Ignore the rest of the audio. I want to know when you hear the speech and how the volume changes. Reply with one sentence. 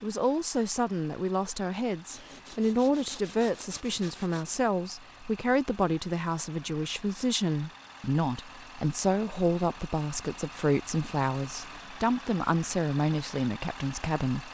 The speech can be heard from 0.0 to 14.5 s, at a steady volume.